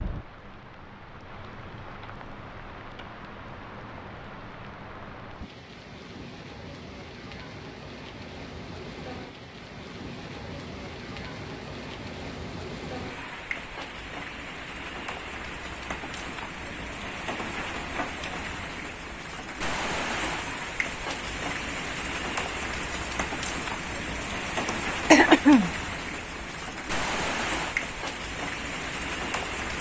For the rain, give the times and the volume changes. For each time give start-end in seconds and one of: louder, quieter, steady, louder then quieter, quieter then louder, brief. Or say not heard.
0.0-29.7 louder.